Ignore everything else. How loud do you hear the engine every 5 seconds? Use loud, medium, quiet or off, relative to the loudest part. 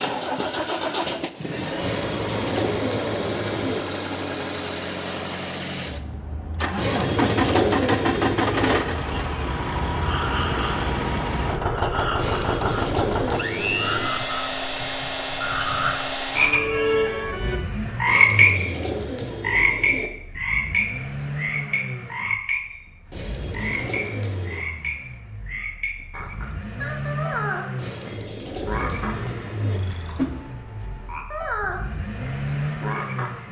loud, loud, loud, medium, medium, medium, medium.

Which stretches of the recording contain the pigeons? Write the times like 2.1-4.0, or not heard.
1.8-3.8, 6.8-8.8, 12.2-14.1, 18.1-20.1, 23.1-24.6, 27.8-29.8.